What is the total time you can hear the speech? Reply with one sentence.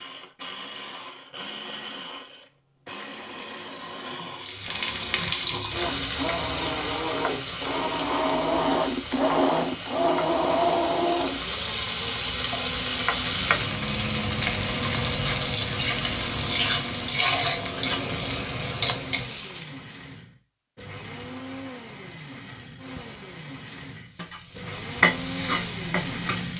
You can't hear the speech here.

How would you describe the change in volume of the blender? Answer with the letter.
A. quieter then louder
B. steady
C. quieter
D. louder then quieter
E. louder
D.